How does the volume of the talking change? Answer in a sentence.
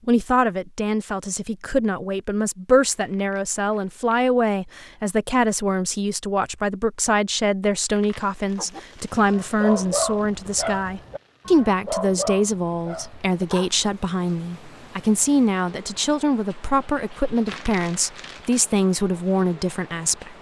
The volume of the talking stays about the same.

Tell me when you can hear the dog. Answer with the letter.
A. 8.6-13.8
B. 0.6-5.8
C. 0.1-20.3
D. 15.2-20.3
A.